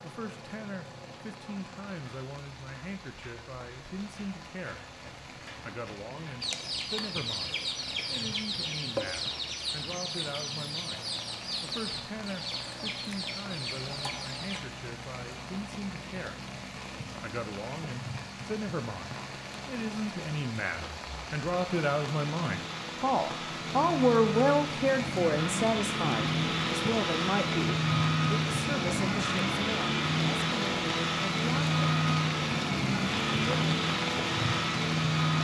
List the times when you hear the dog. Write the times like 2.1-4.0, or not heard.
not heard.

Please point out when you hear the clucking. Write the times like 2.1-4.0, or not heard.
6.4-14.6.